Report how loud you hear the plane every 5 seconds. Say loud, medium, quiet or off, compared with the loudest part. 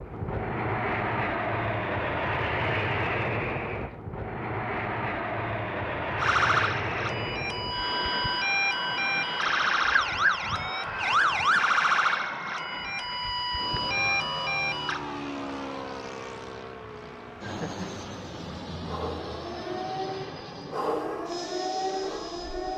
loud, loud, medium, medium, quiet.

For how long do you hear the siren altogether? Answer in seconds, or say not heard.
13 s.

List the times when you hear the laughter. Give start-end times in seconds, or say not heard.
17.4-18.1.